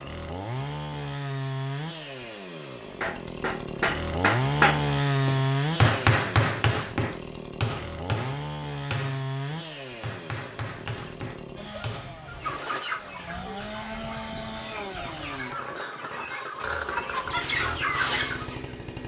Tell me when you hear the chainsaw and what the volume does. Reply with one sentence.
You can hear the chainsaw from 0.0 to 19.0 s, getting louder then quieter.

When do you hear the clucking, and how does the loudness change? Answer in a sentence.
You can hear the clucking from 12.2 to 18.8 s, getting quieter then louder.